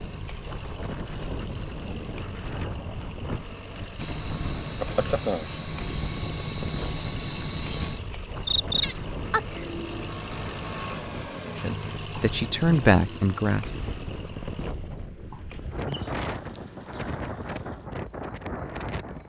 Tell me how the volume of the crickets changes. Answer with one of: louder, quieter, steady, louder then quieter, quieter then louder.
quieter.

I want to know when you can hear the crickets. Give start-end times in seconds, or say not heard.
4.0-19.2.